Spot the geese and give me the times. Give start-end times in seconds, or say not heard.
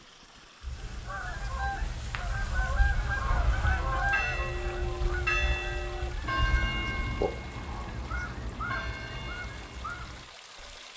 0.6-10.3.